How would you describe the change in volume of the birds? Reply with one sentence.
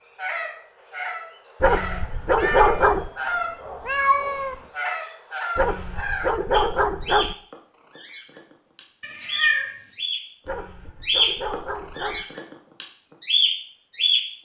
The loudness of the birds goes up.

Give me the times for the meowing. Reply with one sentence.
The meowing can be heard from 2.2 to 3.0 s, from 3.8 to 4.6 s and from 9.0 to 9.8 s.